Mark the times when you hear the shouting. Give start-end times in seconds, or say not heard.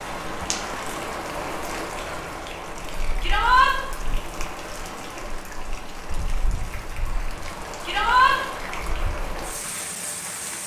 3.2-3.8, 7.8-8.3.